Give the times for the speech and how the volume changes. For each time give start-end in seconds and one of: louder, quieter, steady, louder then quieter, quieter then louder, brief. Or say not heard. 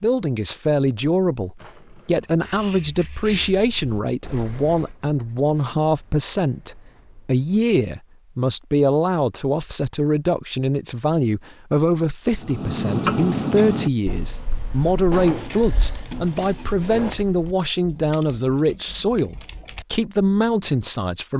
0.0-21.3 steady.